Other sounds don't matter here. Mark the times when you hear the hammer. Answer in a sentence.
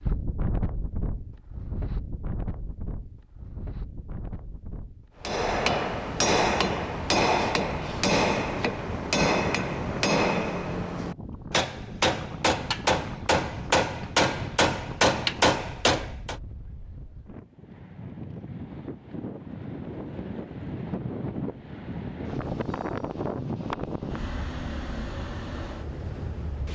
You can hear the hammer from 5.2 to 16.4 s.